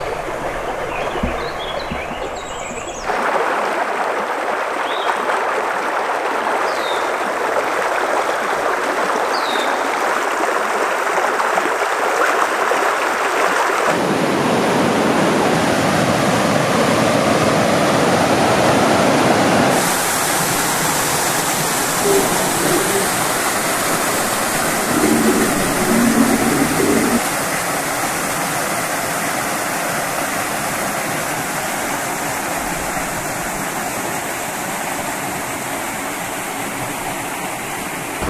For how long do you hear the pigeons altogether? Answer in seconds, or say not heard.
5 s.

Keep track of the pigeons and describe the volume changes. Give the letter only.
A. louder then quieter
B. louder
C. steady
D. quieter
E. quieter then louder
E.